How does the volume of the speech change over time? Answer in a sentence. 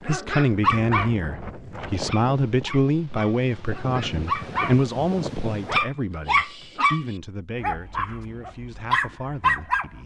The loudness of the speech goes down.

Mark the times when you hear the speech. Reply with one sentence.
The speech can be heard from 0.1 to 10.0 s.